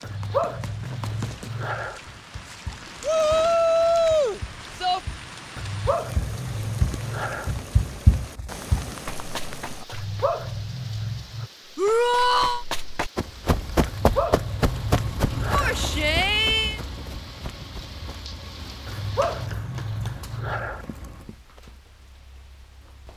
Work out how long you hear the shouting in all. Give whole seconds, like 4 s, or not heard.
4 s.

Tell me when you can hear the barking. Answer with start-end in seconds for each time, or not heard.
0.0-2.0, 5.5-7.5, 9.9-11.5, 13.8-15.8, 18.9-20.9.